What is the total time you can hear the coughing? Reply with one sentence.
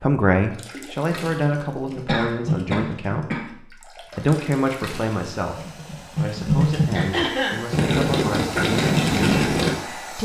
You can hear the coughing for 2 seconds altogether.